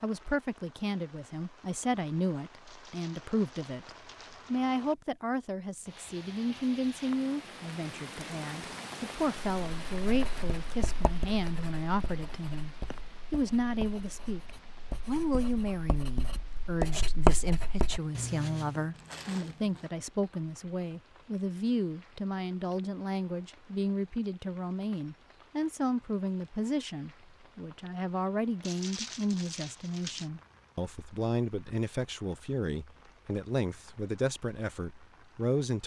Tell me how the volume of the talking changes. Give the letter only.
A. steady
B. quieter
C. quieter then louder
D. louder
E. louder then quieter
A.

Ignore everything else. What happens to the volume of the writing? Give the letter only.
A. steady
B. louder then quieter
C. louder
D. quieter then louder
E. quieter
D.